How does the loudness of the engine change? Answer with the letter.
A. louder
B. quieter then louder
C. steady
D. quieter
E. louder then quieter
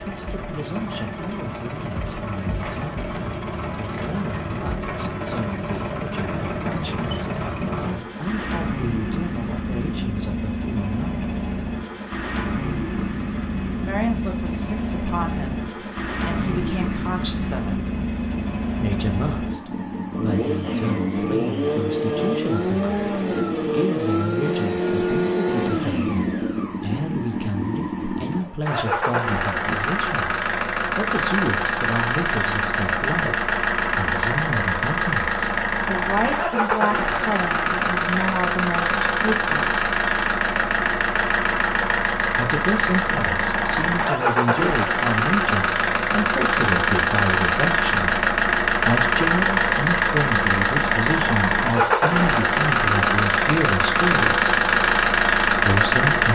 A.